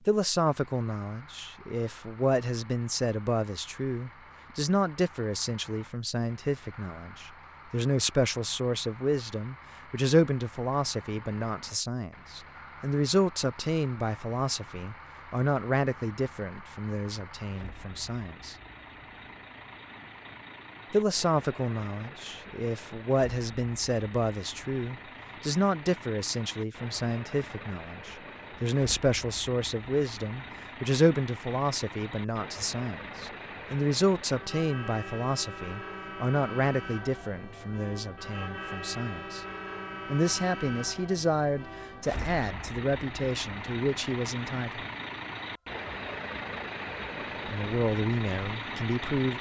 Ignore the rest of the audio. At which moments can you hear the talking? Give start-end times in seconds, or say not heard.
0.1-18.6, 20.9-39.5, 40.1-44.9, 47.5-49.3.